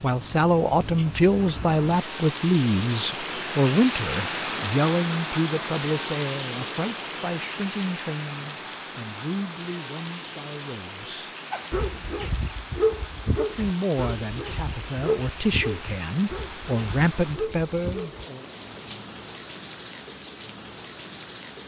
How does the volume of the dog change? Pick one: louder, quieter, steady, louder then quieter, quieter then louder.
quieter.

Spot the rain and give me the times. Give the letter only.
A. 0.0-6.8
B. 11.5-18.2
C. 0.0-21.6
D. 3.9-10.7
C.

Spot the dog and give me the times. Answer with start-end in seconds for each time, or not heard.
11.5-18.2.